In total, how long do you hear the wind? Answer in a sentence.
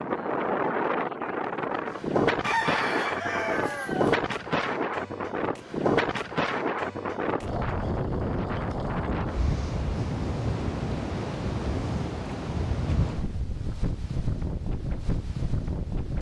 You can hear the wind for 16 seconds altogether.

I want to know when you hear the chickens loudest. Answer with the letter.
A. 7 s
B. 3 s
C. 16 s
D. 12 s
B.